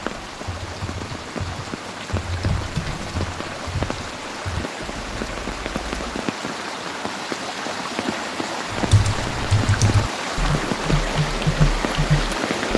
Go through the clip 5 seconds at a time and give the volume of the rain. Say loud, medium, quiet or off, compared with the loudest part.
medium, loud, loud.